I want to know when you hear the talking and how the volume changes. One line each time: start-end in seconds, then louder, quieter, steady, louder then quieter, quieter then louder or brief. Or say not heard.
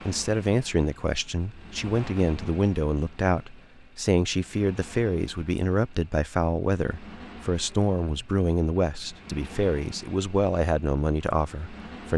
0.1-12.1 steady.